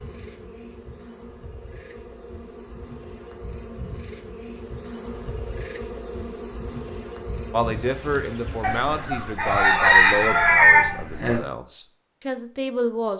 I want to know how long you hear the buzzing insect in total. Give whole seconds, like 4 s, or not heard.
10 s.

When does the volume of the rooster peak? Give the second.
11 s.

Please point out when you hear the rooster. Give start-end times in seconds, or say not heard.
8.6-11.4.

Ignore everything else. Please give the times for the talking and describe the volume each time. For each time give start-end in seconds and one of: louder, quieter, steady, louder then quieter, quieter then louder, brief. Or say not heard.
7.5-13.1 quieter then louder.